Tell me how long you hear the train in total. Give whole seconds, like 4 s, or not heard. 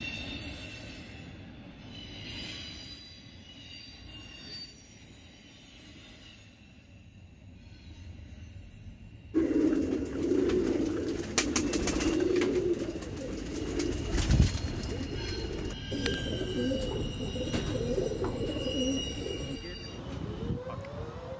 21 s.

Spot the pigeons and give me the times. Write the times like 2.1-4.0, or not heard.
9.3-19.6.